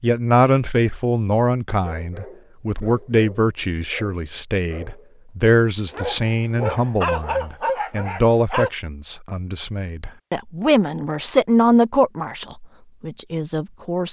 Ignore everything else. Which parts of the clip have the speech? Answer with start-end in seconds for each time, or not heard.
0.0-14.0.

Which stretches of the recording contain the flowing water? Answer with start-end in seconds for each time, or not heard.
not heard.